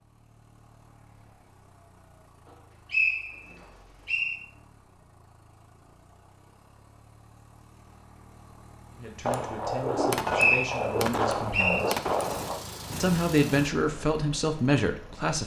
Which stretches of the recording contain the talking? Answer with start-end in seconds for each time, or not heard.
8.9-12.0, 13.0-15.4.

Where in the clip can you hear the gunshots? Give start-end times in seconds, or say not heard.
9.2-12.6.